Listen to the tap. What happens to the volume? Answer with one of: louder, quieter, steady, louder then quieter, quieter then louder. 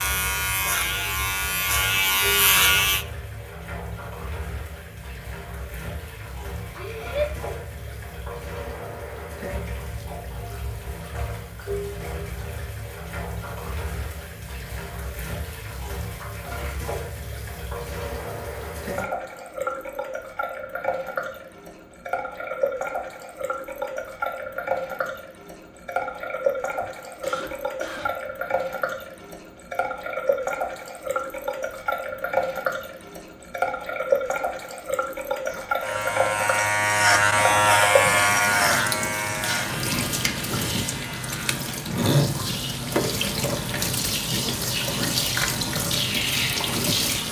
louder.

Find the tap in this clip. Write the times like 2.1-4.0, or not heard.
0.0-47.2.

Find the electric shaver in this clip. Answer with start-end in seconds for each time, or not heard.
0.0-3.0, 35.8-47.2.